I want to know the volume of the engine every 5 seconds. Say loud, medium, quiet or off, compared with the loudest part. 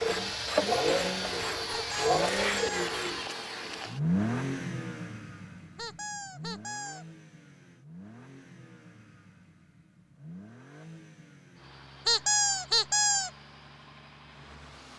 loud, quiet, quiet.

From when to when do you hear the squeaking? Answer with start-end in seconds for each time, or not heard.
1.7-3.0, 5.8-7.0, 12.1-13.3.